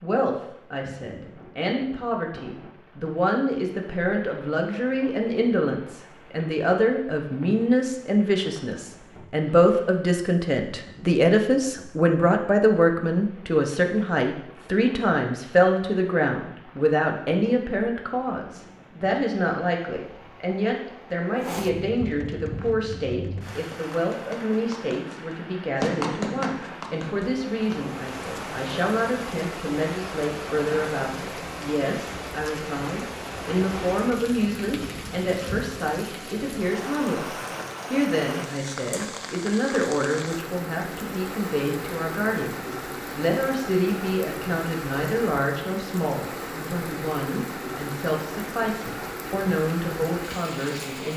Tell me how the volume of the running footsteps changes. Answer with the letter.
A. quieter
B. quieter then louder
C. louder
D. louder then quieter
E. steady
D.